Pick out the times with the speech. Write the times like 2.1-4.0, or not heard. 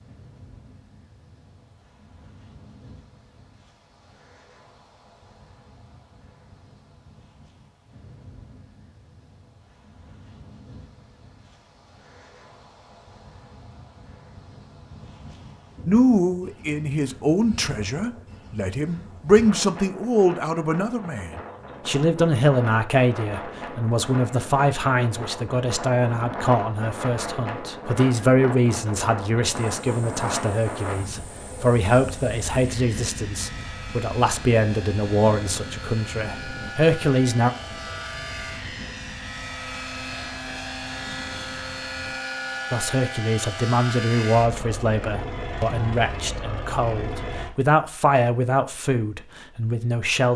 15.8-37.5, 42.7-50.3.